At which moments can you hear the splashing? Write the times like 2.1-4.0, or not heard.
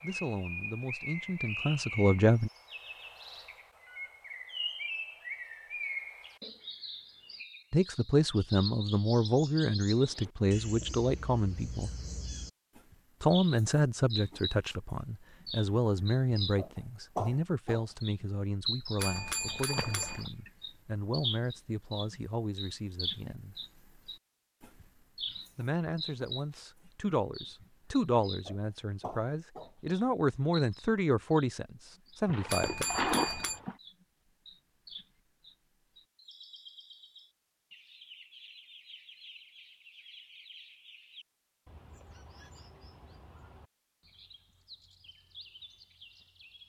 19.6-20.3, 32.2-33.8.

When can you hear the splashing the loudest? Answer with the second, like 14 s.
33 s.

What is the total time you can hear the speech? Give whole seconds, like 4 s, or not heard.
24 s.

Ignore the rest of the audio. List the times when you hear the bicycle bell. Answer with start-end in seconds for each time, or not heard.
18.9-20.2, 32.5-33.6.